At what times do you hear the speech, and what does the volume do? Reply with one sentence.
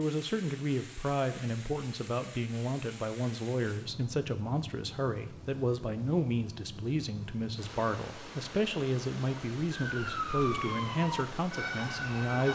The speech can be heard from 0.0 to 12.4 s, at a steady volume.